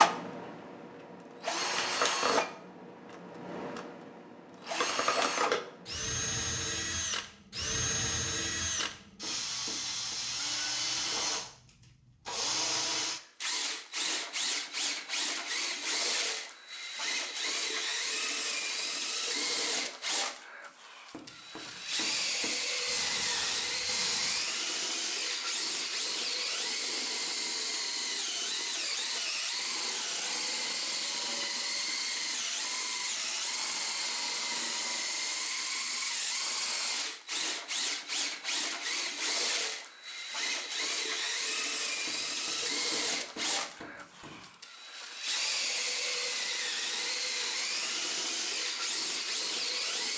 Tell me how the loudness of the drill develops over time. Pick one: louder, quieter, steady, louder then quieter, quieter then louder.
steady.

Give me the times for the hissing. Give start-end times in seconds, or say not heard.
22.9-24.4.